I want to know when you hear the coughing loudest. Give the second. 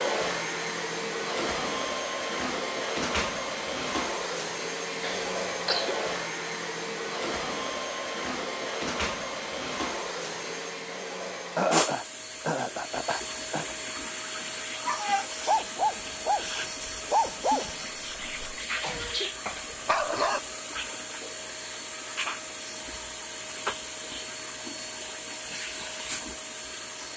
12 s.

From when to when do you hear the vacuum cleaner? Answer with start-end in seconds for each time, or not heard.
0.0-27.1.